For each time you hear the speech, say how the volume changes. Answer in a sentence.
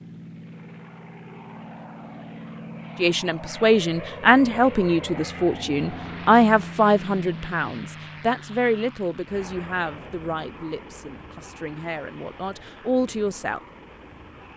The speech can be heard from 3.0 to 13.6 s, getting quieter.